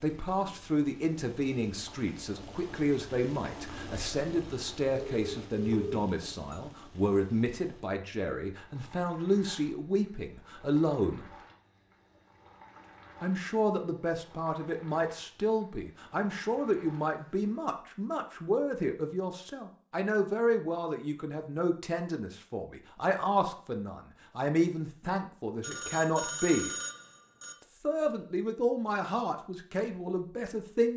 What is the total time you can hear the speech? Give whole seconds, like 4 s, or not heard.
28 s.